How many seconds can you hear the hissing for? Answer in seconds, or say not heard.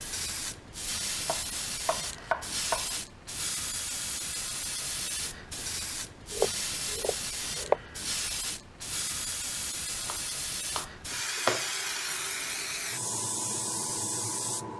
15 s.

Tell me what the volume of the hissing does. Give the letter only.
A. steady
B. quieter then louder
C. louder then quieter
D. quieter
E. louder
A.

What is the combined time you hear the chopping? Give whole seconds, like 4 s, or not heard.
5 s.